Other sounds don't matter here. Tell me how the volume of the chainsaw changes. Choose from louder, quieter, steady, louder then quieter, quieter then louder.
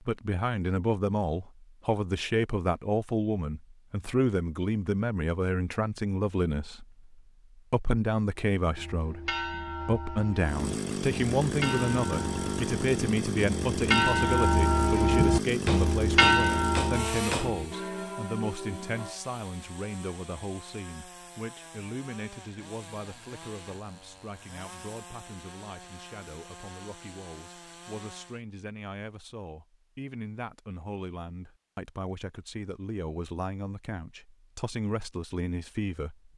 quieter.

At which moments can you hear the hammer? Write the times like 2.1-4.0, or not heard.
15.7-17.5.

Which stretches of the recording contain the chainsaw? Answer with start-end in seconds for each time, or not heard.
10.4-28.4.